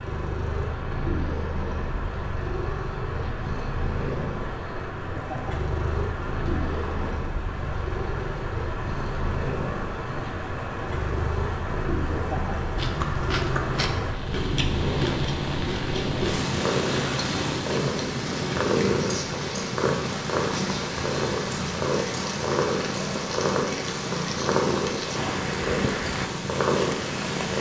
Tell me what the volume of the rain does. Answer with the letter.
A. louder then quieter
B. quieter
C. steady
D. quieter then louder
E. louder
C.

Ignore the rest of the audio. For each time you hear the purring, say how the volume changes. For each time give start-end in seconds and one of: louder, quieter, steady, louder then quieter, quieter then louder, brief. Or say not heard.
0.0-27.5 louder.